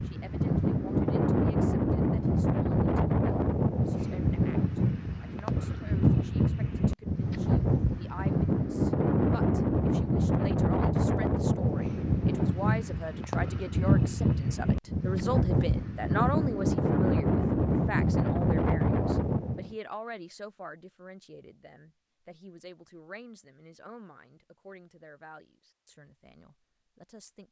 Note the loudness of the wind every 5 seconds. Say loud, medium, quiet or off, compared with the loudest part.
loud, loud, loud, loud, off, off.